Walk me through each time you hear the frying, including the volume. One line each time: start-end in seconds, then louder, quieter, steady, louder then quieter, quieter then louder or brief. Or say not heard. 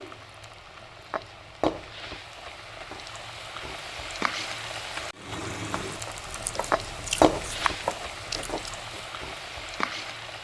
0.0-10.4 louder then quieter.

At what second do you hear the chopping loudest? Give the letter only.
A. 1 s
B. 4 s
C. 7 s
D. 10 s
C.